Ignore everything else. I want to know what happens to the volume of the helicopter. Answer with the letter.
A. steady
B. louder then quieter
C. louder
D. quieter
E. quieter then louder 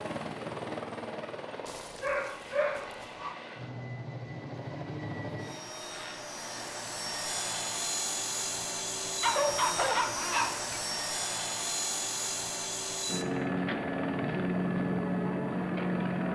C.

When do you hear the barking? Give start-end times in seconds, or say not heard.
1.6-3.4, 9.2-10.8.